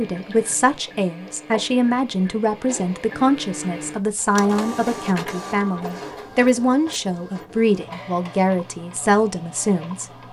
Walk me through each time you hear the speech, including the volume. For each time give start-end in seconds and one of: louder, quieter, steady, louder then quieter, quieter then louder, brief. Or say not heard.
0.0-10.1 steady.